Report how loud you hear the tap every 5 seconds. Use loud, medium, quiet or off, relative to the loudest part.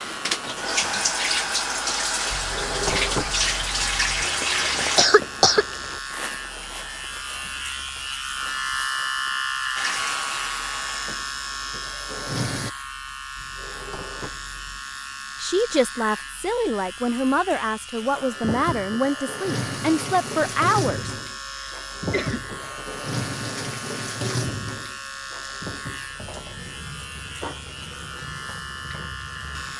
loud, medium, medium, medium, medium, quiet.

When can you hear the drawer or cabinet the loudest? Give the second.
3 s.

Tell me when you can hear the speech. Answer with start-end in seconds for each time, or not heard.
15.4-21.1.